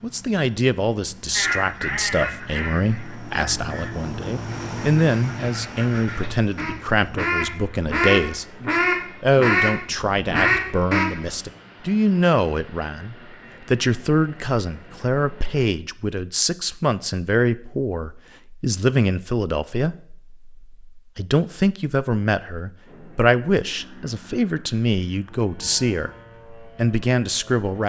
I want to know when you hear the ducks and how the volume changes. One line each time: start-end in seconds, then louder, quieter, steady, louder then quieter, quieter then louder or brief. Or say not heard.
1.3-11.1 quieter then louder.